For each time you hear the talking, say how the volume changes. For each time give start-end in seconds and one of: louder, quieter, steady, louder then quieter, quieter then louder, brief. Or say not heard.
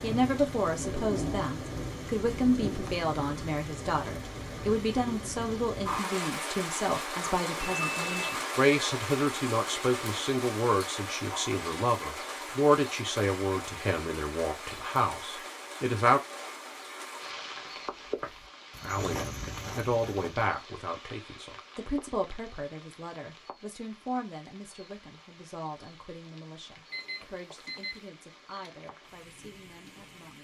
0.0-16.2 steady
18.8-30.4 quieter.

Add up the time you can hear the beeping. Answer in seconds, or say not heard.
2 s.